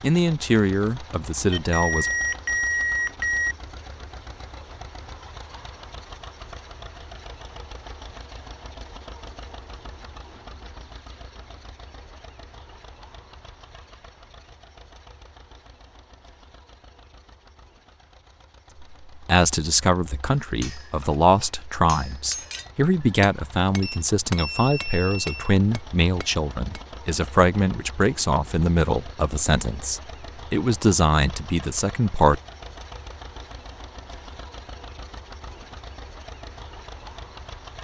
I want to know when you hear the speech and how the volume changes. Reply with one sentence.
The speech can be heard briefly from 0.0 to 2.1 s; and from 18.8 to 32.4 s, at a steady volume.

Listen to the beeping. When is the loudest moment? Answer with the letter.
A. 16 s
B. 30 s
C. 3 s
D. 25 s
C.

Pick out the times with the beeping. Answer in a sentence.
You can hear the beeping from 1.5 to 3.5 s and from 23.8 to 25.6 s.